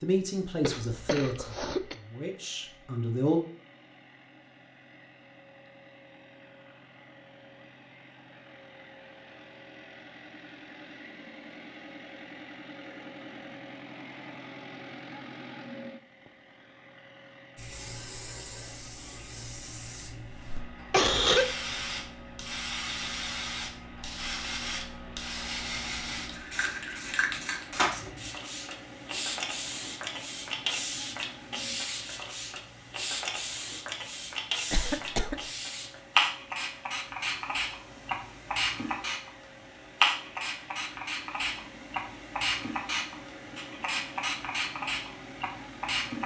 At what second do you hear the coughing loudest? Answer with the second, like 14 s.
21 s.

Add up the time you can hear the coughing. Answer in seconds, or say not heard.
3 s.